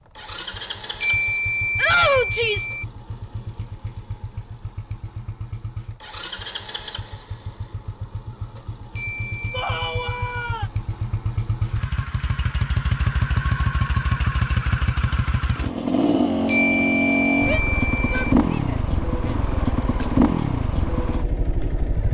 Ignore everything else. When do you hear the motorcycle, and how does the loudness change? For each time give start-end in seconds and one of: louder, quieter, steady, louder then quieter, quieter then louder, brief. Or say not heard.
0.0-22.1 louder.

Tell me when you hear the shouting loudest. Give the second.
2 s.